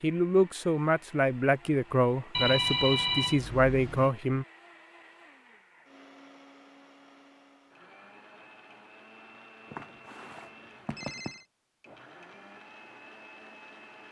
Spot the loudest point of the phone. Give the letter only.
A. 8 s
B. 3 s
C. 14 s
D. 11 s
B.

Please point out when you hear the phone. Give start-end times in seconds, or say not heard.
2.3-4.1, 9.7-11.4.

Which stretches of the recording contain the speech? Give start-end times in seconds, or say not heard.
0.0-4.5.